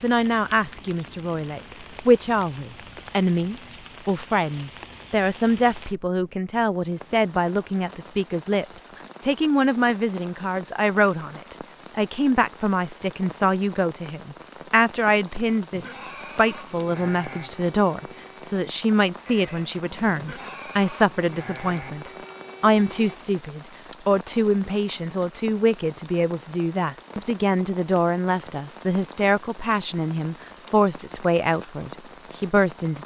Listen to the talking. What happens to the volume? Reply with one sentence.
The volume of the talking stays about the same.